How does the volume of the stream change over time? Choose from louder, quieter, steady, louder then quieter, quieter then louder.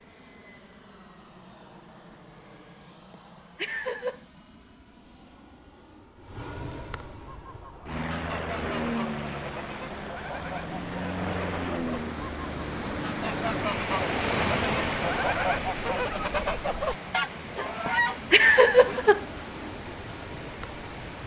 louder then quieter.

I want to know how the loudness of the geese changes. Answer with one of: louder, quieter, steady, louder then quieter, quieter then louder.
louder.